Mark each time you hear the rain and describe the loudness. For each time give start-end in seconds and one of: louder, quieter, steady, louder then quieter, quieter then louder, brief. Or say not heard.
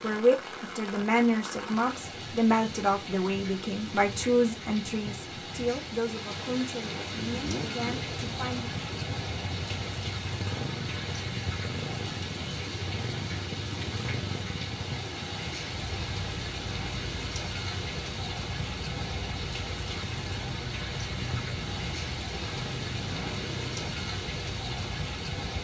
0.0-25.5 steady.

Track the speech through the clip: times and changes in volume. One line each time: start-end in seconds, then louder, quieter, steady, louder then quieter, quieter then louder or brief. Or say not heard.
0.0-8.8 quieter.